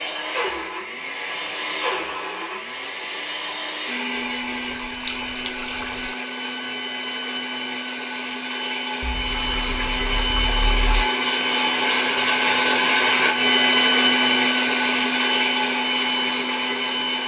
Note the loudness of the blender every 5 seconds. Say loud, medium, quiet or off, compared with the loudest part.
medium, medium, loud, loud.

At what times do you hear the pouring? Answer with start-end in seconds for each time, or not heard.
4.2-6.2, 9.0-11.1.